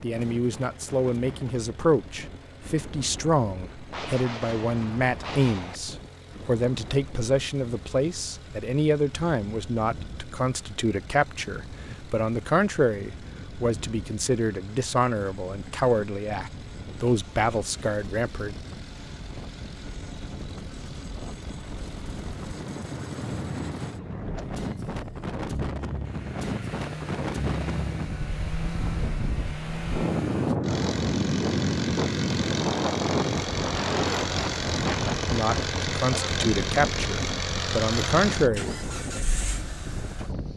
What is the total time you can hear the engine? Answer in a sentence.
You can hear the engine for 40 seconds altogether.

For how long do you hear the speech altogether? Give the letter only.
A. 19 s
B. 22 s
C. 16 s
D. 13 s
B.